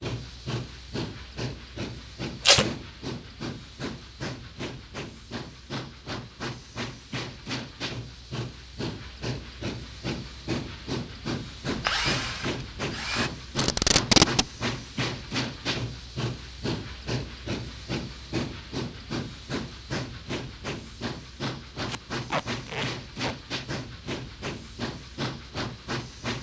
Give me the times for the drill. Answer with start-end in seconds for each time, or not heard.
11.7-13.3.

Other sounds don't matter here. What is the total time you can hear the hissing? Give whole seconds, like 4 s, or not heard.
26 s.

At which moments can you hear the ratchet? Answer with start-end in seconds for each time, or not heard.
not heard.